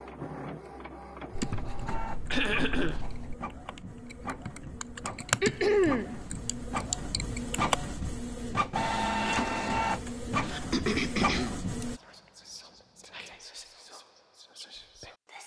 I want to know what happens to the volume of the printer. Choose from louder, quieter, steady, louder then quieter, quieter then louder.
louder.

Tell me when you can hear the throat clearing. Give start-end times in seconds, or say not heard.
2.3-3.0, 5.4-6.2, 10.4-11.6.